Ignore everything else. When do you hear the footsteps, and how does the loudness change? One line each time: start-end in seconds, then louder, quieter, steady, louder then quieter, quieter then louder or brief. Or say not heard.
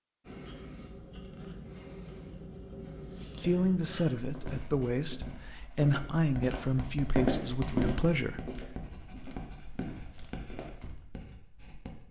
4.2-10.8 louder then quieter.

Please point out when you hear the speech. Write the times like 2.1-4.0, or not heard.
3.4-8.4.